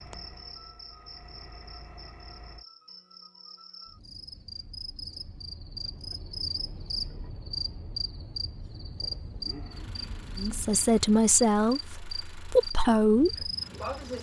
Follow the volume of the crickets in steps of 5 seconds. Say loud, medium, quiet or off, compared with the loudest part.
medium, loud, loud.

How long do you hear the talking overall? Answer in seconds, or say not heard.
3 s.